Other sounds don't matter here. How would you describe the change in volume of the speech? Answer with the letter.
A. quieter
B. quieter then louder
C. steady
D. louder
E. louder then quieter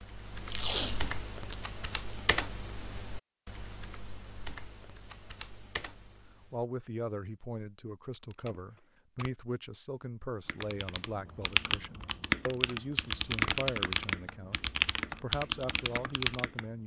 C.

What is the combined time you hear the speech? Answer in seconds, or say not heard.
10 s.